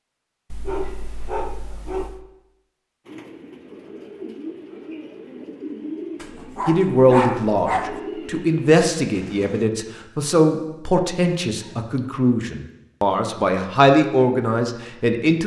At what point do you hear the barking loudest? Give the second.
7 s.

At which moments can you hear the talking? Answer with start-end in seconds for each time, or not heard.
6.7-15.4.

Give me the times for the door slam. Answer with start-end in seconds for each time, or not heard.
not heard.